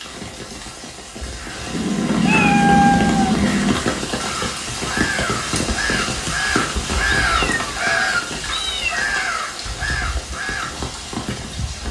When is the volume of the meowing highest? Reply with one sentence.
The loudest moment of the meowing is at 3 seconds.